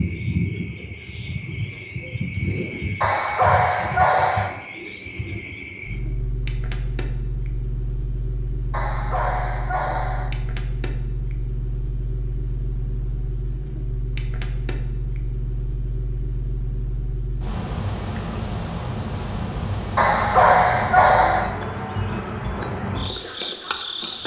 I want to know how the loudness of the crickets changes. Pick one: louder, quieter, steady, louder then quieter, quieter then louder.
steady.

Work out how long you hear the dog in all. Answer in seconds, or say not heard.
5 s.